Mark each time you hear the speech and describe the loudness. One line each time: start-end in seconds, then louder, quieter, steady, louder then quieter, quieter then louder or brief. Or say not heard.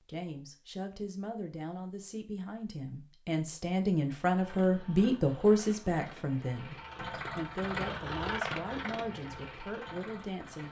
0.1-10.6 louder then quieter.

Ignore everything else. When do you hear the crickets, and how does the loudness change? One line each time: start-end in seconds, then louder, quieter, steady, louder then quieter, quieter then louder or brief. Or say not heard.
not heard.